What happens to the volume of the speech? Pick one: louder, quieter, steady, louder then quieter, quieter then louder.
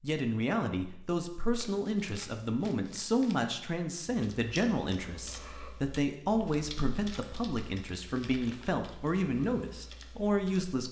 steady.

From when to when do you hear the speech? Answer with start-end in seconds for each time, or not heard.
0.0-10.8.